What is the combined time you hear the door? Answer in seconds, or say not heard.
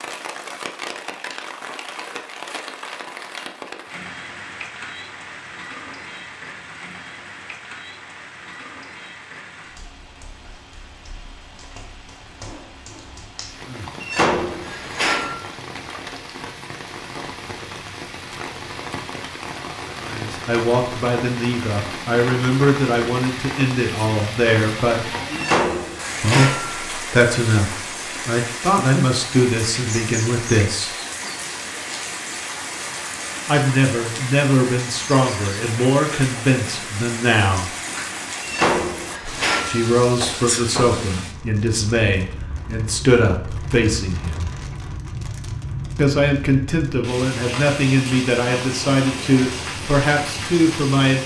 6 s.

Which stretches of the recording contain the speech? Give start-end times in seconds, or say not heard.
20.0-25.1, 26.2-30.9, 33.5-37.7, 39.6-44.5, 46.0-51.2.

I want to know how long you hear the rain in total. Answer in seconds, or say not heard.
51 s.